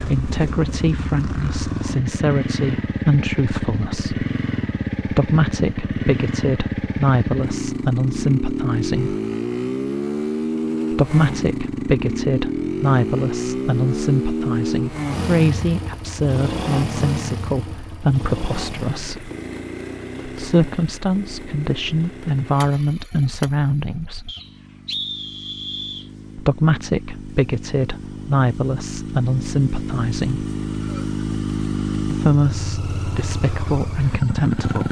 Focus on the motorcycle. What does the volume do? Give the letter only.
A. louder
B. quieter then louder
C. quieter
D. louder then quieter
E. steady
B.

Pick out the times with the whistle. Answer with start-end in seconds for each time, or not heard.
24.2-26.1.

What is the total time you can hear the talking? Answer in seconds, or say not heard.
28 s.